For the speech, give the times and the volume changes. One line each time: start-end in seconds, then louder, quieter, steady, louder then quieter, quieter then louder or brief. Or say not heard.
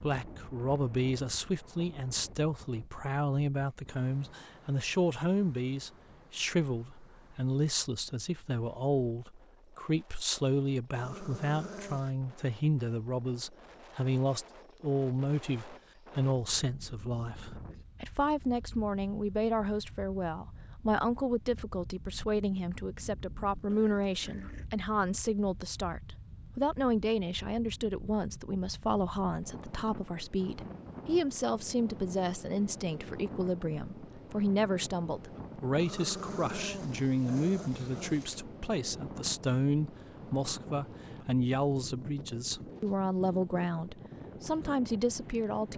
0.0-45.7 steady.